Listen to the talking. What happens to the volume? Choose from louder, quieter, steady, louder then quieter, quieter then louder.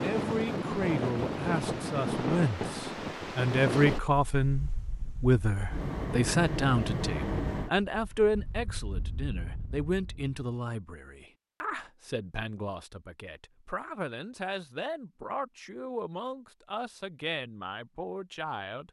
quieter.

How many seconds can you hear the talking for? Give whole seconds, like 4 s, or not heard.
19 s.